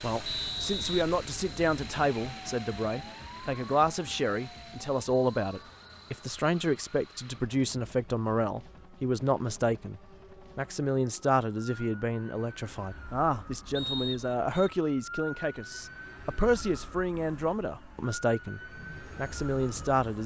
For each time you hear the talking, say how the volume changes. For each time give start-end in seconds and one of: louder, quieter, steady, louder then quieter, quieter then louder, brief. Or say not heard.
0.0-20.2 steady.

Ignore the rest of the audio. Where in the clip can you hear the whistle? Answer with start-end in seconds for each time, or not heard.
0.2-1.1, 13.8-14.4.